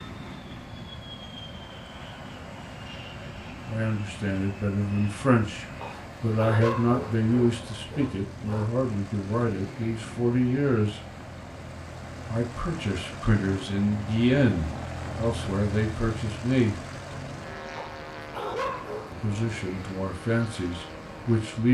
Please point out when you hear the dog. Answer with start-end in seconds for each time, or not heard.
5.8-8.7, 17.8-19.2.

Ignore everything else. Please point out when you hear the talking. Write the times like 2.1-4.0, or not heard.
3.6-11.0, 12.2-16.8, 19.1-21.6.